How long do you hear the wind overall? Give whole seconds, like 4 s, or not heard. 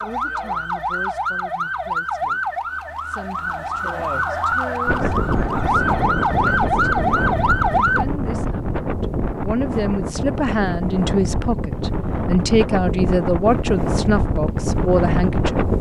11 s.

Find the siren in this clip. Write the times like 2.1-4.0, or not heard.
0.0-8.1.